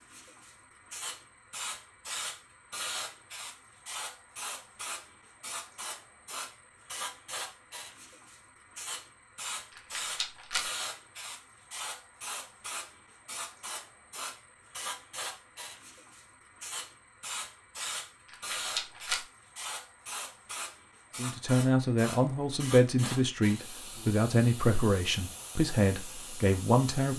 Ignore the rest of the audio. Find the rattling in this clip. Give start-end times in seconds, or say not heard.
9.7-10.7, 18.2-19.2.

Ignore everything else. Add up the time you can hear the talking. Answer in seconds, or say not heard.
6 s.